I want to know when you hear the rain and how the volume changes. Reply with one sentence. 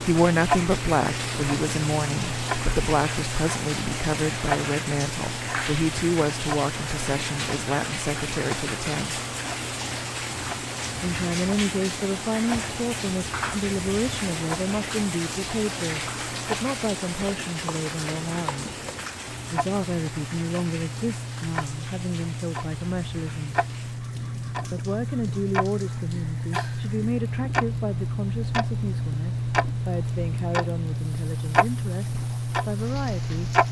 The rain can be heard from 0.0 to 33.6 s, getting quieter.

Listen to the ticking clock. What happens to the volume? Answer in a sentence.
The loudness of the ticking clock goes down, then up.